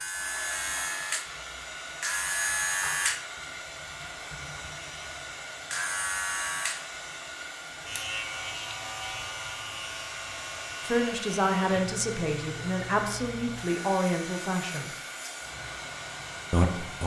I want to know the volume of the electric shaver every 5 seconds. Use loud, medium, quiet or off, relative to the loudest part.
loud, loud, medium, quiet.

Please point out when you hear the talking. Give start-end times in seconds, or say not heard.
10.8-14.9, 16.5-17.0.